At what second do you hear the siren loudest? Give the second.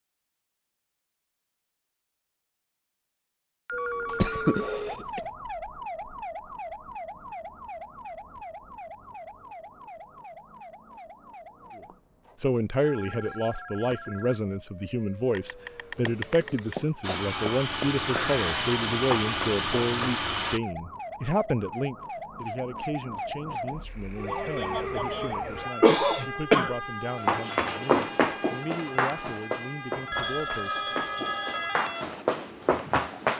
25 s.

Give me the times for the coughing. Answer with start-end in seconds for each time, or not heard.
4.0-5.2, 15.3-17.1, 25.8-26.8.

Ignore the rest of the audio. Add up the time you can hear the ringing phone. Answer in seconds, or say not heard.
6 s.